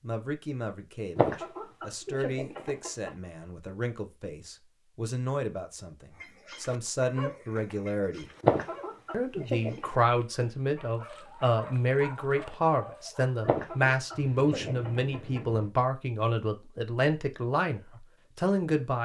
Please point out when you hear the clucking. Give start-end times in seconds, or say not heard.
1.1-3.1, 8.4-9.9, 13.4-15.4.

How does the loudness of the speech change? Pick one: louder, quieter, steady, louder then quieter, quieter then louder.
louder.